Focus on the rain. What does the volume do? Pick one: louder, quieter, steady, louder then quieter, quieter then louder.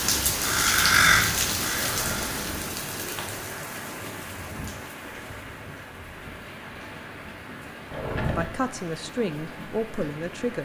quieter.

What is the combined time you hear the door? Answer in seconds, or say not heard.
2 s.